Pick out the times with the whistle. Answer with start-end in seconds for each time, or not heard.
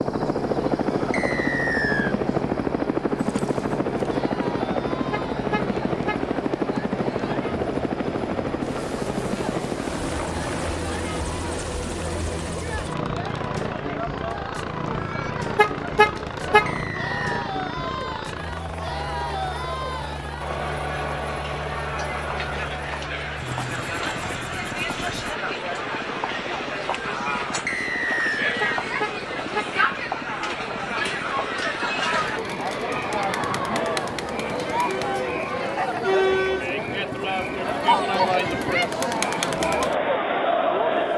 1.1-2.1, 16.6-17.4, 27.6-28.4.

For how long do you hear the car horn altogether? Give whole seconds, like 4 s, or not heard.
3 s.